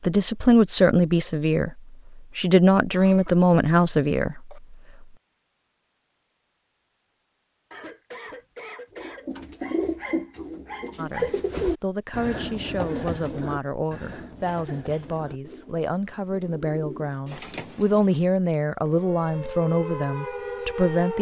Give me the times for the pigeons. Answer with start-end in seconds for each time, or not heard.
8.9-18.2.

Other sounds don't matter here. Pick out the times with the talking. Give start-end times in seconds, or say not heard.
0.0-4.8, 10.9-21.1.